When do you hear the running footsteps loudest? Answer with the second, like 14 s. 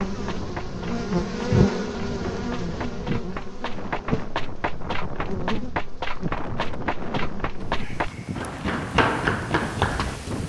9 s.